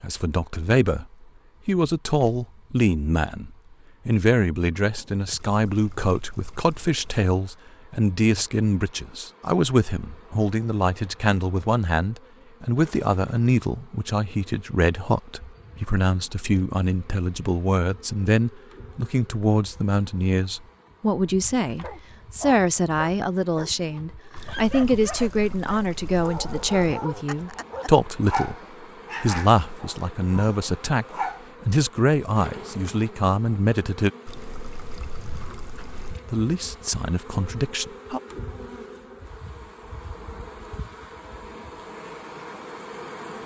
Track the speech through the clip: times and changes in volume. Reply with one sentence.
The speech can be heard from 0.0 to 28.6 s, at a steady volume; from 29.2 to 34.1 s, getting louder; and briefly from 36.3 to 38.2 s.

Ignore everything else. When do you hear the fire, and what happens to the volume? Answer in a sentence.
The fire can't be heard in this clip.